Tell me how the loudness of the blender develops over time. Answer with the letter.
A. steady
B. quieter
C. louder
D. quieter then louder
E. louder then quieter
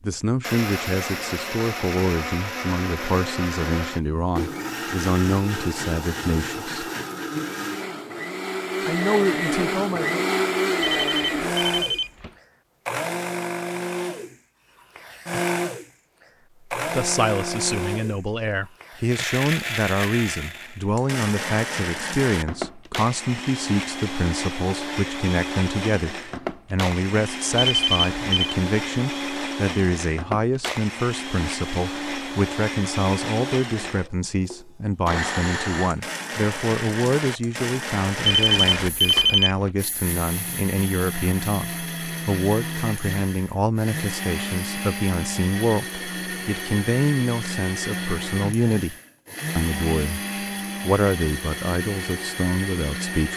A.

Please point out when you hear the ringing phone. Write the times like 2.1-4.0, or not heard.
10.8-12.3, 27.6-28.6, 38.2-39.7.